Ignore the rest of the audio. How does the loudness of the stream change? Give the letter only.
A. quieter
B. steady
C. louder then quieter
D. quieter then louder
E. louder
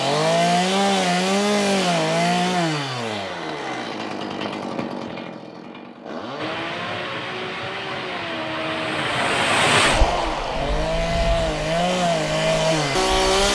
C.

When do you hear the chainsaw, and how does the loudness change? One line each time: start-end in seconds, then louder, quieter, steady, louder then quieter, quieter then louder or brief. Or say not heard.
0.0-13.4 quieter then louder.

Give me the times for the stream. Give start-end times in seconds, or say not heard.
6.3-13.4.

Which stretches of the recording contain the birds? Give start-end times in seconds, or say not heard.
not heard.